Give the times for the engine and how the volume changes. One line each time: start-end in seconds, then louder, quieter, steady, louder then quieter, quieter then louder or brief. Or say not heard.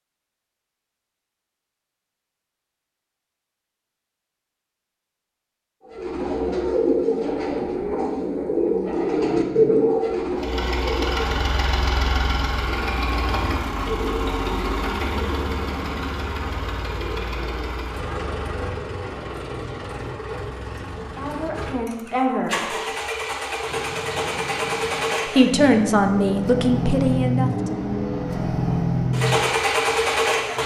10.3-30.6 quieter then louder.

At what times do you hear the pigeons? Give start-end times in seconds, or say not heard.
5.9-17.9.